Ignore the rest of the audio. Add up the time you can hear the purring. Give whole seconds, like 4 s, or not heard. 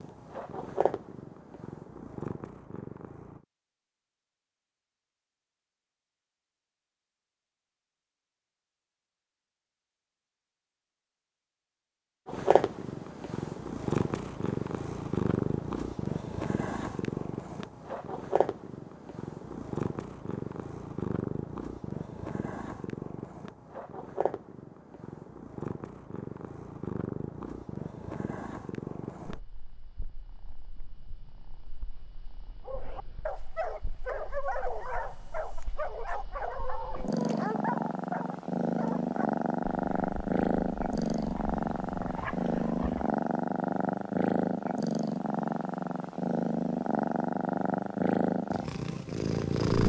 41 s.